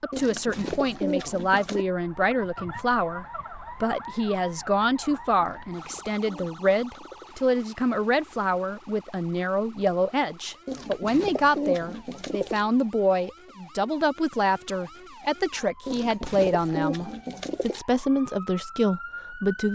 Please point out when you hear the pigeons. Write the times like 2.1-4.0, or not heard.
0.1-1.9, 5.3-7.3, 10.7-12.7, 15.8-17.8.